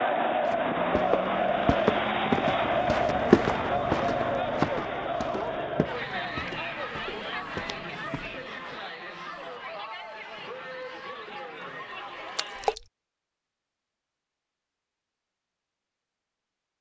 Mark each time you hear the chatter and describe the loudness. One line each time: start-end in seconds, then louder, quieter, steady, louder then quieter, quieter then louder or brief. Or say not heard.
0.0-12.8 quieter.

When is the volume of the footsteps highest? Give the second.
3 s.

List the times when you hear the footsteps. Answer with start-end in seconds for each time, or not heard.
0.5-8.8.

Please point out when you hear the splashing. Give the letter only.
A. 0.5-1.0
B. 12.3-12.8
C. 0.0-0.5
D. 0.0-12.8
B.